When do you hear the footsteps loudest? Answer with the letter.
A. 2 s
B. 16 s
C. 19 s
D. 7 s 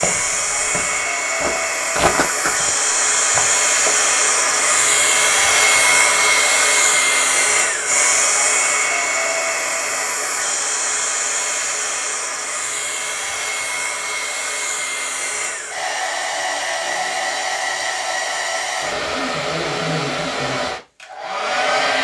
A.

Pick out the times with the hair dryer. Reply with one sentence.
The hair dryer can be heard from 0.0 to 22.0 s.